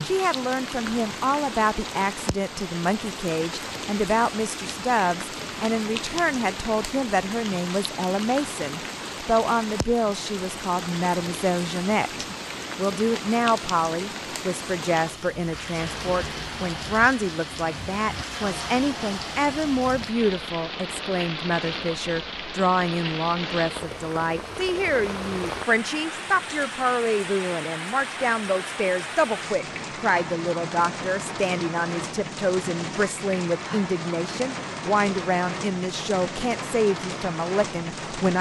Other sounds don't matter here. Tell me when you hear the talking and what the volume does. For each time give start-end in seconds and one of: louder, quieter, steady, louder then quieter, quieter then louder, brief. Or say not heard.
0.0-38.3 steady.